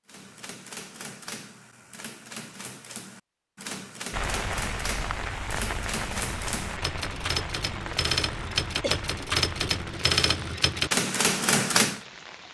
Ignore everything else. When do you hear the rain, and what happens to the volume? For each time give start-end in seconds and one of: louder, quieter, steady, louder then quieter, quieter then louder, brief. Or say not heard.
4.1-12.4 quieter.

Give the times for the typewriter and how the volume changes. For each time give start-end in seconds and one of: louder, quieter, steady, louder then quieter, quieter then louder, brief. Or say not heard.
0.1-12.0 louder.